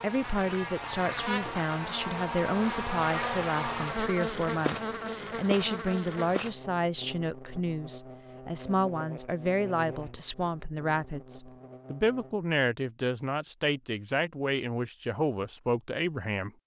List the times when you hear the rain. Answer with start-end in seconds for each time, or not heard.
not heard.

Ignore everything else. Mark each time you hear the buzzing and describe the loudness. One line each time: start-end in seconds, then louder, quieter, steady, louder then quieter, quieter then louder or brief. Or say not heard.
0.0-12.4 quieter.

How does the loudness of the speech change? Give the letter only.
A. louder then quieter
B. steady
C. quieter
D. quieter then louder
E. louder
B.